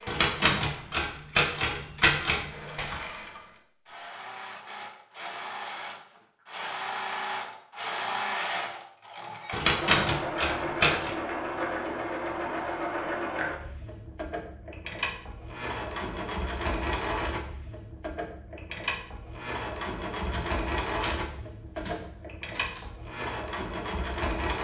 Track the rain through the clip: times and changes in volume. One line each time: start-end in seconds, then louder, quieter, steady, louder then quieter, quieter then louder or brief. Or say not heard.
not heard.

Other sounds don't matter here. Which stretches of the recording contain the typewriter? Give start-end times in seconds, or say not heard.
0.1-3.0, 9.5-11.1, 20.3-22.8.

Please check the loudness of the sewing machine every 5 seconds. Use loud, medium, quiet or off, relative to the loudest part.
medium, loud, loud, loud, loud.